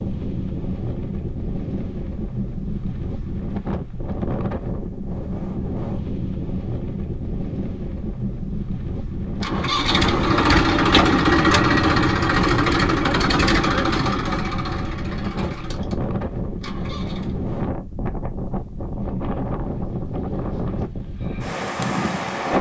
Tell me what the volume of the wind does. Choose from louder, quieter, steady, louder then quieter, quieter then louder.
steady.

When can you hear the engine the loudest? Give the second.
11 s.